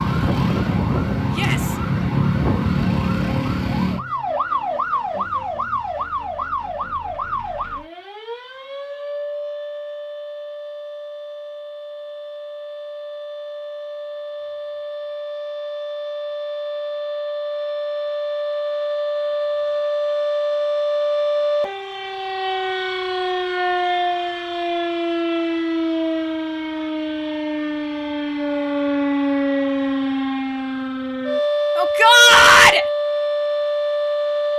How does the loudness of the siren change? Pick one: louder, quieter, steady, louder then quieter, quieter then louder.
quieter then louder.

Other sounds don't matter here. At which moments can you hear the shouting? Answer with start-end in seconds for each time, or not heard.
1.3-1.8, 31.8-32.9.